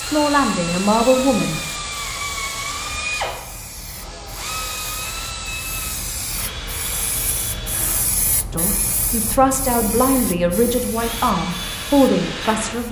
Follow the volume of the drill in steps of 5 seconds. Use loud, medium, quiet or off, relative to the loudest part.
loud, medium, loud.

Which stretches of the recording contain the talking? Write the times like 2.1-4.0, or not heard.
0.0-1.6, 8.5-12.8.